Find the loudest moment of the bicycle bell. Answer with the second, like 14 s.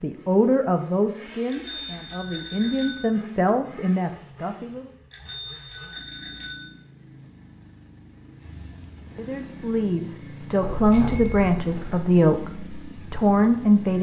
11 s.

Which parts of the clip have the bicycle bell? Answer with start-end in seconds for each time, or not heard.
1.4-3.0, 5.1-6.7, 10.6-12.0.